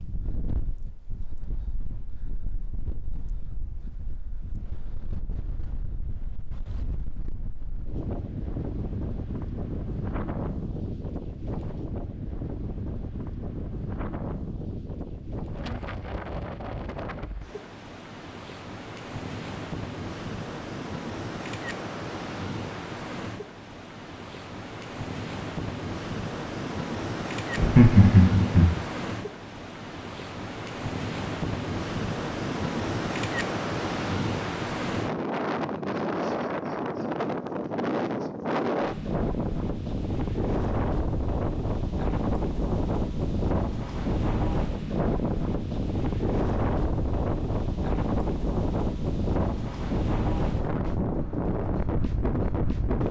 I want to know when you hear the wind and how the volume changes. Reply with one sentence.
You can hear the wind from 0.0 to 53.0 s, getting louder.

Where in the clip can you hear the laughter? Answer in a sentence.
The laughter can be heard from 27.6 to 28.6 s.